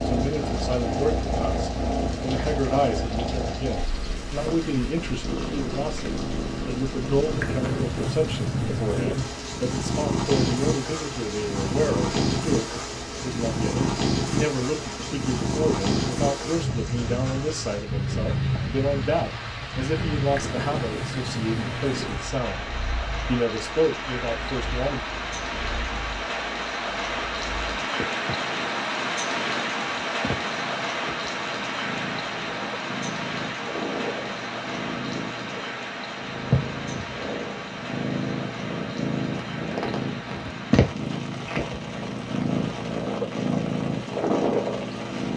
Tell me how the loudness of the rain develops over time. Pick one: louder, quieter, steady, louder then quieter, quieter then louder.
louder then quieter.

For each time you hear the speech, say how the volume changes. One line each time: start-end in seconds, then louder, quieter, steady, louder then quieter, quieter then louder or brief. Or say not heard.
0.0-25.0 steady.